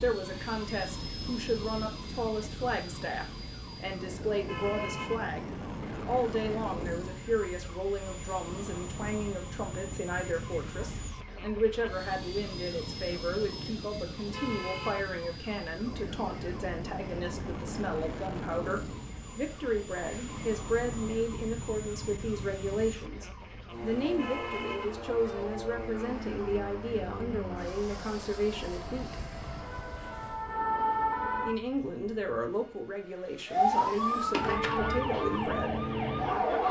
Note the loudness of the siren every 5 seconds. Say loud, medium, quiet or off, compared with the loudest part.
quiet, quiet, quiet, quiet, quiet, quiet, loud, loud.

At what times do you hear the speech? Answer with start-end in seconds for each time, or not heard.
0.0-29.2, 31.4-35.9.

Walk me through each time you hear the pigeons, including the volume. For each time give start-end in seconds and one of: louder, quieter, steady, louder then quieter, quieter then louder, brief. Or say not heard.
not heard.